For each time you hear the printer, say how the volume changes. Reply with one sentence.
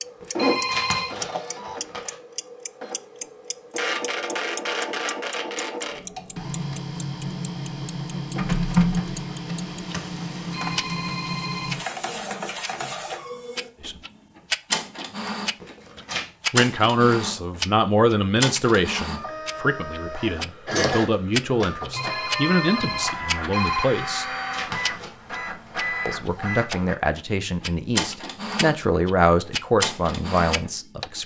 You can hear the printer from 0.0 to 31.2 s, at a steady volume.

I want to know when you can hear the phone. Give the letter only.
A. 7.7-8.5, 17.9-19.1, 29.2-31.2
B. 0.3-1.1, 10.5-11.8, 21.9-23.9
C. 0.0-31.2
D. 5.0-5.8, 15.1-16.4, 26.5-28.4
B.